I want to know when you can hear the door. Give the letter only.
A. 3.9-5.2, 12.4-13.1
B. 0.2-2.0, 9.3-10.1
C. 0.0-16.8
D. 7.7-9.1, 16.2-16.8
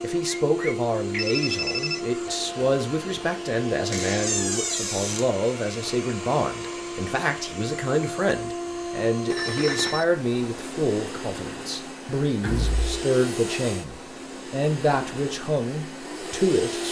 A.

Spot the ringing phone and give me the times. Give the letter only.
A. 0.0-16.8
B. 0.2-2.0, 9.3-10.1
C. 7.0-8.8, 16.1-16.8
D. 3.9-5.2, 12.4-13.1
B.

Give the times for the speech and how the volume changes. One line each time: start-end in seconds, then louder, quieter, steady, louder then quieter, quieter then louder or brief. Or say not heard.
0.0-16.8 steady.